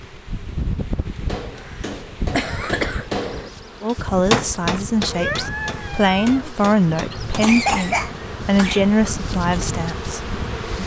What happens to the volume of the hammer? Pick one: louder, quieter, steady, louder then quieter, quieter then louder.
louder then quieter.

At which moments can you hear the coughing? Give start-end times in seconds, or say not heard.
1.6-3.2, 7.4-8.9.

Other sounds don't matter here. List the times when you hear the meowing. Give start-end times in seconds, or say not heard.
5.0-6.5.